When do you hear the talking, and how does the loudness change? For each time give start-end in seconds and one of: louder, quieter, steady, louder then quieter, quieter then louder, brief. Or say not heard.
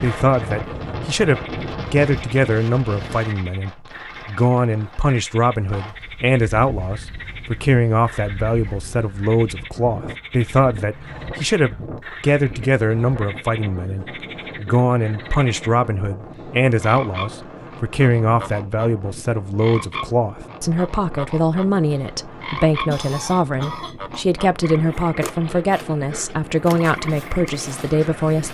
0.0-28.4 steady.